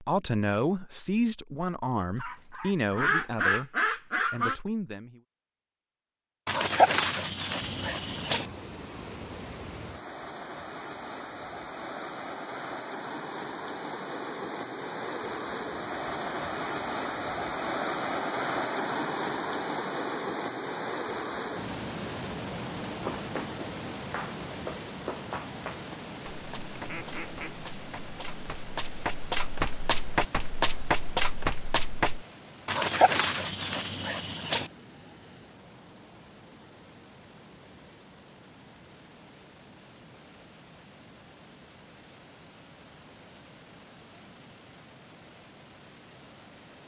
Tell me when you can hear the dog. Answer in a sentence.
You can hear the dog from 6.5 to 8.5 s and from 32.6 to 34.7 s.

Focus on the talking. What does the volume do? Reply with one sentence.
The loudness of the talking goes down.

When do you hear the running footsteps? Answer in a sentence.
You can hear the running footsteps from 22.9 to 32.2 s.